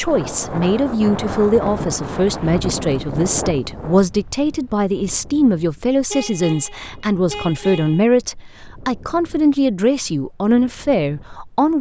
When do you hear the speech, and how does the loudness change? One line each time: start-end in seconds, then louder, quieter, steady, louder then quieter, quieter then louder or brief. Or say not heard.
0.0-11.7 steady.